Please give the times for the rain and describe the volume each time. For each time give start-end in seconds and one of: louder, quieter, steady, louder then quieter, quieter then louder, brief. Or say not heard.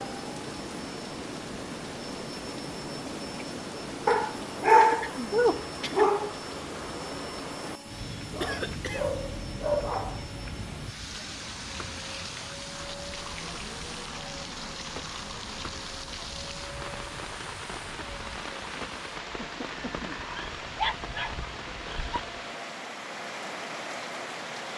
0.0-24.7 steady.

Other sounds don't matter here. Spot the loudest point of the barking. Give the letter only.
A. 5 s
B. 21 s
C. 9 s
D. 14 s
A.